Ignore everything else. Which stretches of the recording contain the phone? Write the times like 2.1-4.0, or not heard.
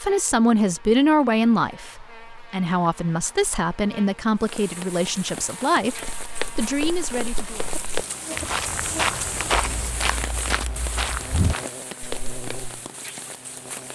not heard.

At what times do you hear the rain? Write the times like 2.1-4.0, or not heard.
4.3-13.8.